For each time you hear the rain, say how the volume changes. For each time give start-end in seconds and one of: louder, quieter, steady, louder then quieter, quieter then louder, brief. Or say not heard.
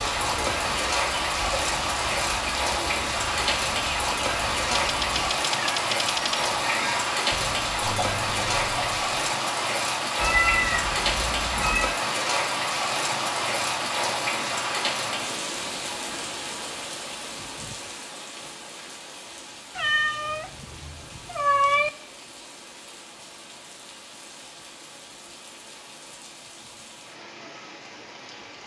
0.0-28.6 quieter.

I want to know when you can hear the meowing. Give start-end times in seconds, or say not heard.
4.9-6.5, 10.2-11.9, 19.8-21.9.